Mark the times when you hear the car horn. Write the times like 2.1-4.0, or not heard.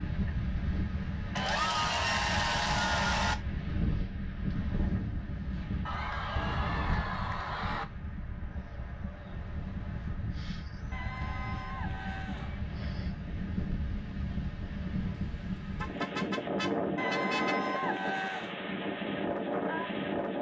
6.3-7.0, 15.2-17.6.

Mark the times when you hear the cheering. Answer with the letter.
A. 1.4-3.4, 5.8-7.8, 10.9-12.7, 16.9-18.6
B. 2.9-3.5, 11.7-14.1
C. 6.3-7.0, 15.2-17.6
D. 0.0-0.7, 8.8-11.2
A.